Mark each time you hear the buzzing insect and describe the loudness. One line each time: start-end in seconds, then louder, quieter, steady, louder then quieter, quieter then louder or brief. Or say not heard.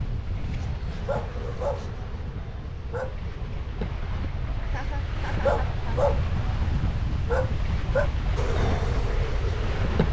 0.0-4.0 louder then quieter
8.3-10.0 brief.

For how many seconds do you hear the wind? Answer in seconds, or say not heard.
10 s.